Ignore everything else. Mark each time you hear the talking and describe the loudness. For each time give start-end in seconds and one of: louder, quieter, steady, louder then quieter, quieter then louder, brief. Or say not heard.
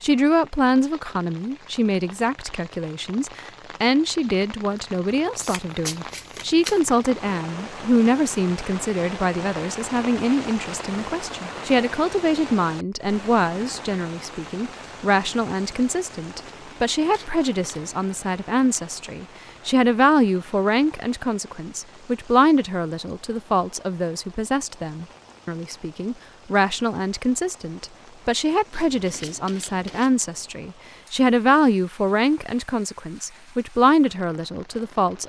0.0-35.2 steady.